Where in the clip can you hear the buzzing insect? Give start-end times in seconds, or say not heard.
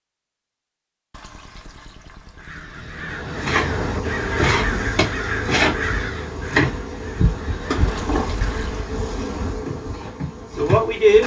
3.2-11.2.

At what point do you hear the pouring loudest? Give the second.
8 s.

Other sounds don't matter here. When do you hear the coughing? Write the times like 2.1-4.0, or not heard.
not heard.